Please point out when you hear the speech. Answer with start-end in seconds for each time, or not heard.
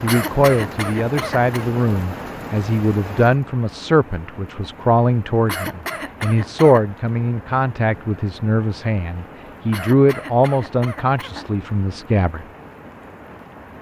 0.0-12.4.